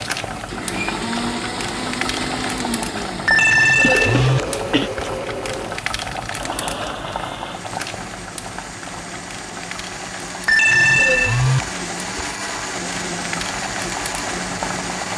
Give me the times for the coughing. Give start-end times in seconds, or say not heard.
3.8-4.9.